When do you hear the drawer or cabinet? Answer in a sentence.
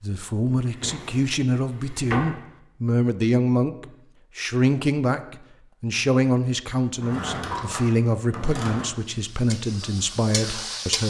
You can hear the drawer or cabinet from 0.7 to 2.4 s and from 7.0 to 8.9 s.